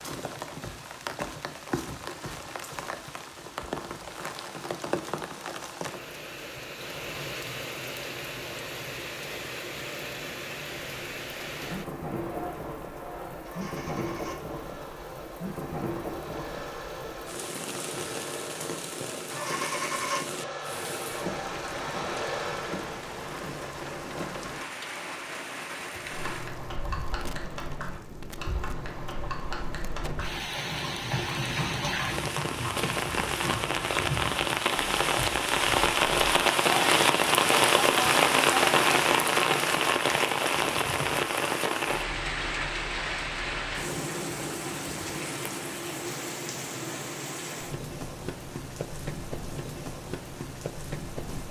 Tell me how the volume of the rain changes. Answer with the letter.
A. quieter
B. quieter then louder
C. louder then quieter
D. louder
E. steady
C.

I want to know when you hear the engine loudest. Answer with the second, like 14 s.
20 s.